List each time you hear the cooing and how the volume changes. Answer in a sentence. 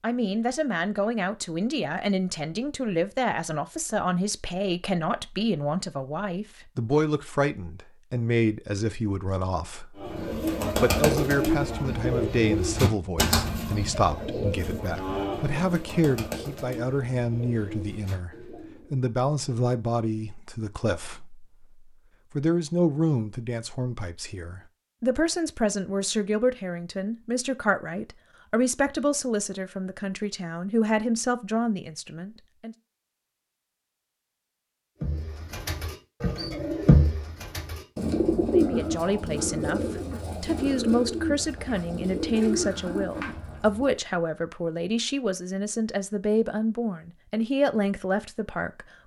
The cooing can be heard from 9.9 to 19.0 s, getting quieter; and from 35.0 to 44.0 s, getting quieter.